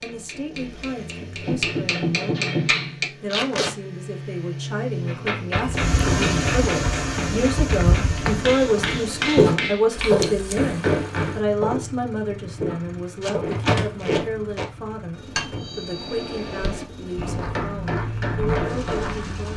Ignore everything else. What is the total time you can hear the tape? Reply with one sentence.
You can hear the tape for 3 seconds altogether.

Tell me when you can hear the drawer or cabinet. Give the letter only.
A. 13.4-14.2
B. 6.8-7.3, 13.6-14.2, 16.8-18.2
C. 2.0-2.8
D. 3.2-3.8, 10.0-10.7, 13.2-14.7
A.